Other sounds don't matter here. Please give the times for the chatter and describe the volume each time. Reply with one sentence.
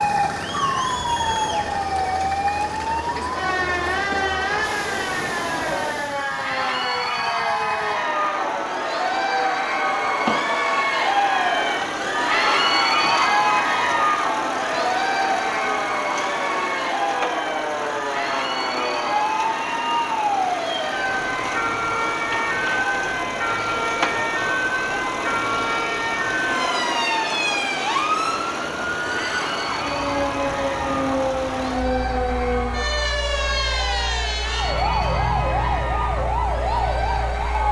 You can hear the chatter from 0.0 to 37.6 s, getting louder then quieter.